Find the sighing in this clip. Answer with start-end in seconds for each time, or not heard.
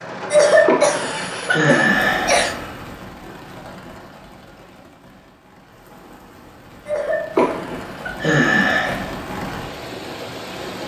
0.7-2.8, 7.3-8.9.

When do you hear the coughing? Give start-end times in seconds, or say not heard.
0.3-2.5, 6.8-9.1.